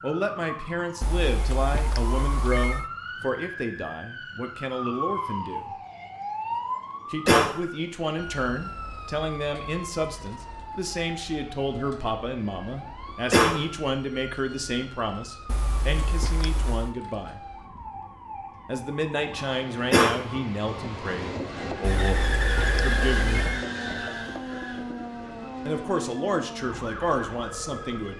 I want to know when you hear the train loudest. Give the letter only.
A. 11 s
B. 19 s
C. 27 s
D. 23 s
D.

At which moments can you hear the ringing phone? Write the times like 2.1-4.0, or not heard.
1.0-2.9, 15.4-16.9, 21.8-23.6.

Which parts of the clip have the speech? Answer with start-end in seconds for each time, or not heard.
0.0-5.8, 7.1-17.5, 18.6-23.4, 25.6-28.1.